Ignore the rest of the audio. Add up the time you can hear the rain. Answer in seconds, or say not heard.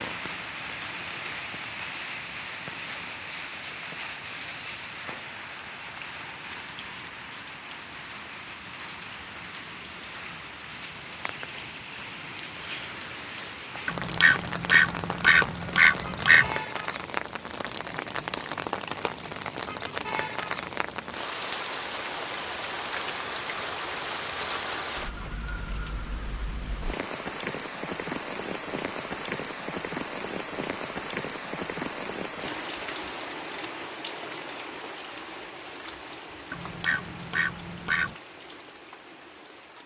40 s.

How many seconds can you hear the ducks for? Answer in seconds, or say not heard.
4 s.